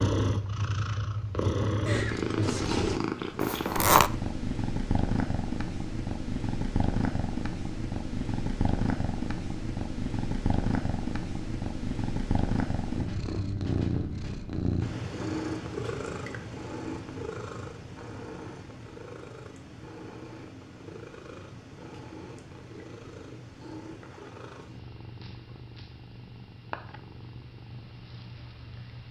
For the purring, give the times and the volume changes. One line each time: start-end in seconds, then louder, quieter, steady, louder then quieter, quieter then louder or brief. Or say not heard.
0.0-29.0 quieter.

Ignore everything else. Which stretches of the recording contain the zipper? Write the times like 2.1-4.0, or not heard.
3.4-4.1.